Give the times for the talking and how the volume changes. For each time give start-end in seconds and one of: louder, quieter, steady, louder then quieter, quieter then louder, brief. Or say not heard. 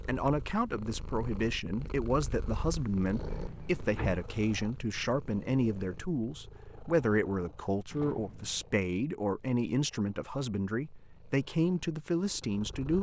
0.1-12.9 steady.